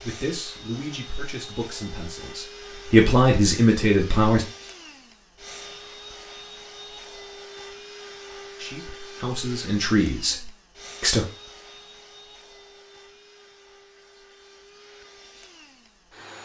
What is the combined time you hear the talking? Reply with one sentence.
You can hear the talking for 7 seconds altogether.